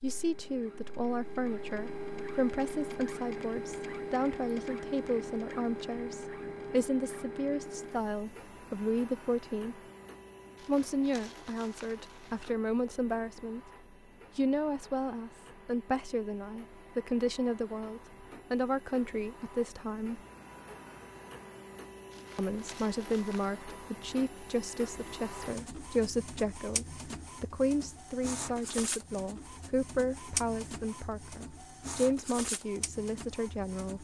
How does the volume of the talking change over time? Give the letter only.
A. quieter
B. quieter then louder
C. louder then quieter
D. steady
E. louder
D.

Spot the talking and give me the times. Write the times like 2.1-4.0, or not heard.
0.0-9.8, 10.7-13.7, 14.3-20.2, 22.4-33.9.